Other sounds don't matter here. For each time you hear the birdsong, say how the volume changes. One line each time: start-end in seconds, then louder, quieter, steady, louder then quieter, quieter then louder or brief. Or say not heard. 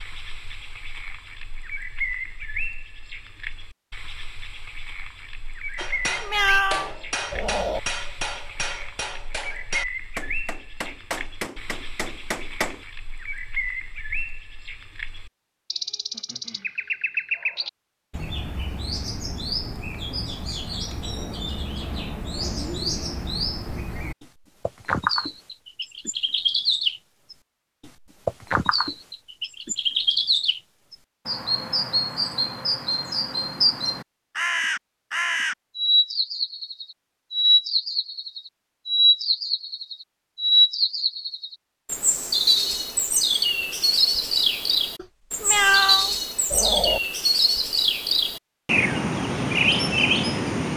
0.0-50.7 louder.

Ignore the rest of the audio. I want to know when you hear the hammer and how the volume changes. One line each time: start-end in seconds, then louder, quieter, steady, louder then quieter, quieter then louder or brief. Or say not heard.
5.8-12.8 steady.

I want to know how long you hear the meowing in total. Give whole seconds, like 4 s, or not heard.
4 s.